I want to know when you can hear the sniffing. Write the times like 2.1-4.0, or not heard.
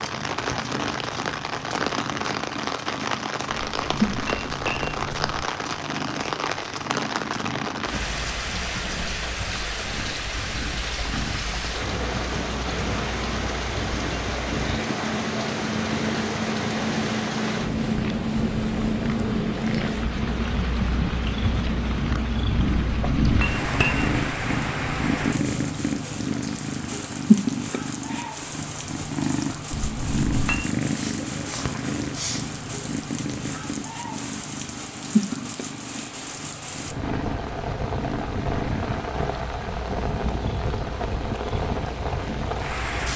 30.9-32.5.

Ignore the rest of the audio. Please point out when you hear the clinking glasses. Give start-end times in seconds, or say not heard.
3.5-5.5, 22.9-24.1, 29.7-30.7.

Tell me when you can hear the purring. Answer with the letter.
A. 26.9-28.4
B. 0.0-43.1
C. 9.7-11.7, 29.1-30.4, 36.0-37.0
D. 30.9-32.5
B.